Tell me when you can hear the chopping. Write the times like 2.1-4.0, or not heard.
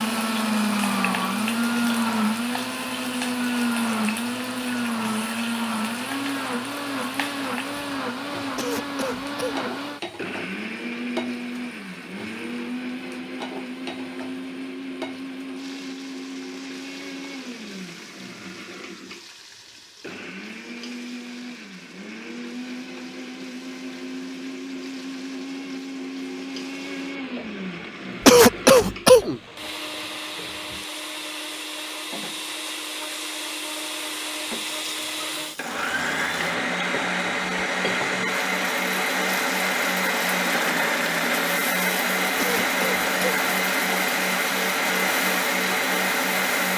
not heard.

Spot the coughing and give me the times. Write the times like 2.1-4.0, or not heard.
8.6-9.7, 28.2-29.4, 42.4-43.5.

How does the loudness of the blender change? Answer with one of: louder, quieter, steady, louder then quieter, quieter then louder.
quieter then louder.